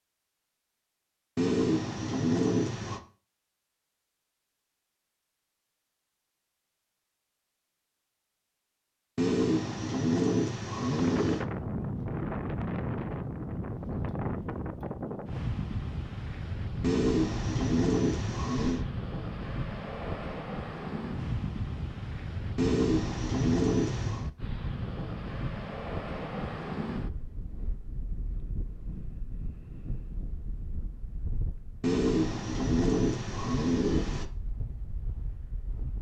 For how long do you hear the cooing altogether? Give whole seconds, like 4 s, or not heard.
10 s.